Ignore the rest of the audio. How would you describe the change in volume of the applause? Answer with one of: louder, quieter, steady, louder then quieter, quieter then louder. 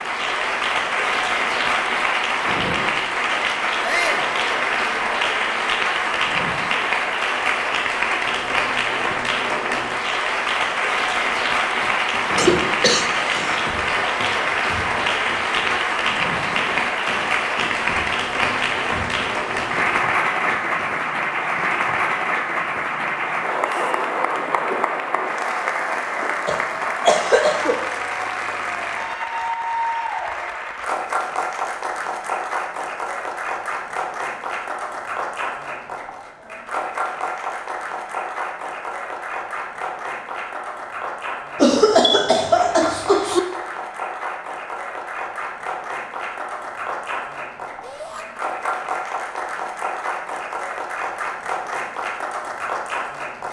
quieter.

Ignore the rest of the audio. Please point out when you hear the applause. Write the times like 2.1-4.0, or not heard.
0.0-53.4.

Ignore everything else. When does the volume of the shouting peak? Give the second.
4 s.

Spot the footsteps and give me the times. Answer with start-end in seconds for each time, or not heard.
not heard.